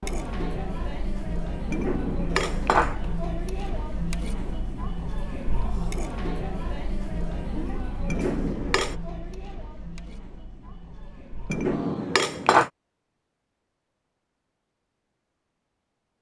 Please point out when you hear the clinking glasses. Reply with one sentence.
You can hear the clinking glasses from 1.7 to 3.0 s, from 8.1 to 8.9 s and from 11.5 to 12.7 s.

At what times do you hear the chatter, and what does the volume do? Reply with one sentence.
The chatter can be heard from 0.0 to 12.2 s, getting quieter.